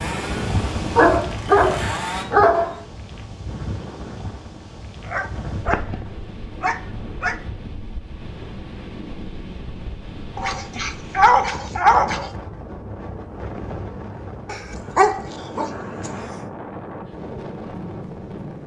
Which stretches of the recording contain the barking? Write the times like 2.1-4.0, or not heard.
0.9-2.8, 5.0-7.3, 10.3-12.3, 14.4-16.4.